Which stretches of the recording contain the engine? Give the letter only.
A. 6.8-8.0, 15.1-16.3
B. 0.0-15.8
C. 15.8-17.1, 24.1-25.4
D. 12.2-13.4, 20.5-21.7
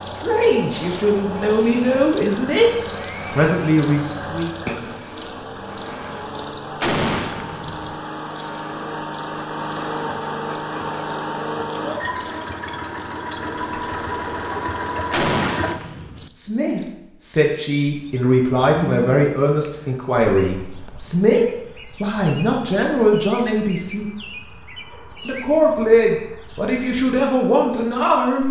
B.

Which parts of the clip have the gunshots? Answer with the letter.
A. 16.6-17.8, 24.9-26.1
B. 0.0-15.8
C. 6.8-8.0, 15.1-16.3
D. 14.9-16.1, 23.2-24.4
C.